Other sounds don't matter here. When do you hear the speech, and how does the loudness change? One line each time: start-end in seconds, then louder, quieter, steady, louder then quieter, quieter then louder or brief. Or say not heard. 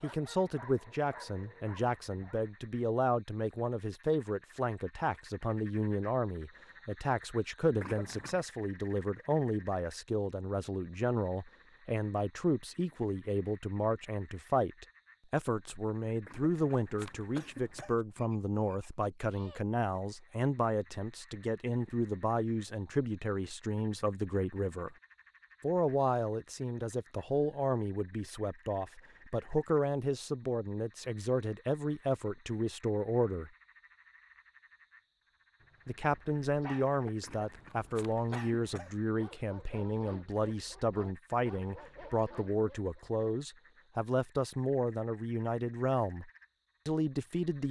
0.0-24.9 steady
25.6-33.5 steady
35.9-47.6 steady.